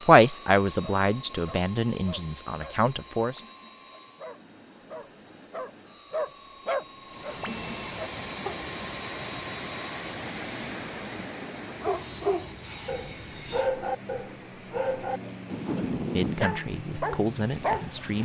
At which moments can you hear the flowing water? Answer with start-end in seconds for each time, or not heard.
7.0-18.2.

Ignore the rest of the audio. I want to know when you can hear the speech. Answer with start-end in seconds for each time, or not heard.
0.1-3.4, 15.9-18.2.